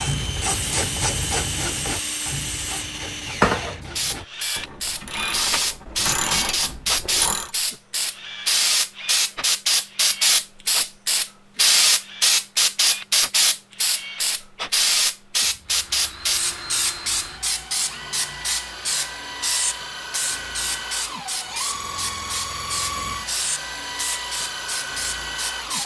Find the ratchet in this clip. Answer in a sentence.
The ratchet can be heard from 0.0 to 7.5 s.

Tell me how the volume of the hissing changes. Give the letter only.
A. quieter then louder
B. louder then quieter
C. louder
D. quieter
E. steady
B.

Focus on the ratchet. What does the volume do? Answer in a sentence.
The loudness of the ratchet goes down, then up.